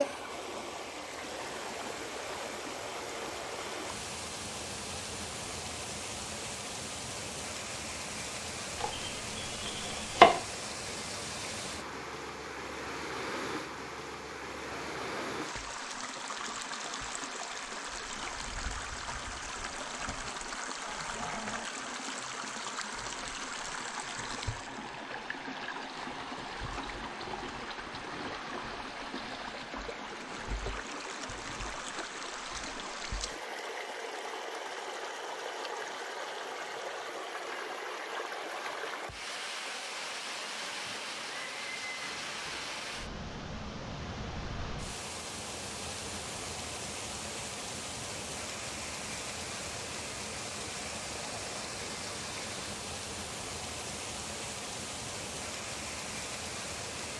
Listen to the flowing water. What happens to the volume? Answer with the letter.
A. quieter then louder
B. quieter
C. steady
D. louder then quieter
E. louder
C.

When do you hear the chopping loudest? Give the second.
10 s.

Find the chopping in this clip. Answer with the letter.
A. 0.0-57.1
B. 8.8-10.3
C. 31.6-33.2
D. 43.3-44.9
B.